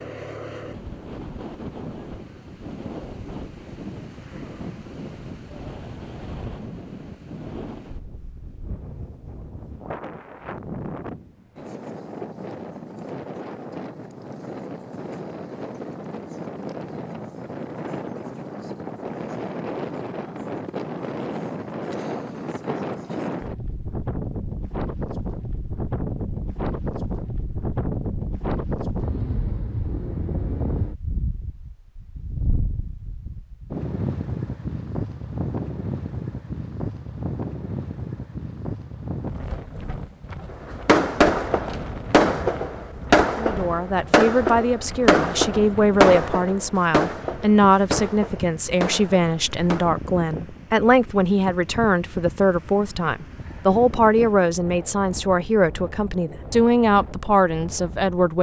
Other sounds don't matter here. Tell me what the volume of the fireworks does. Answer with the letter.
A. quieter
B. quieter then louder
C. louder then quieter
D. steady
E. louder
A.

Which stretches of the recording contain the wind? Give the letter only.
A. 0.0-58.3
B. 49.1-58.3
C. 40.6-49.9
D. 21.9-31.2
A.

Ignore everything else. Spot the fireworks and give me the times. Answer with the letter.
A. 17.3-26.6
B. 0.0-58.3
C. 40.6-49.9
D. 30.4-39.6
C.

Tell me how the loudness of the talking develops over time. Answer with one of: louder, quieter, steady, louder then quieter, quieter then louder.
steady.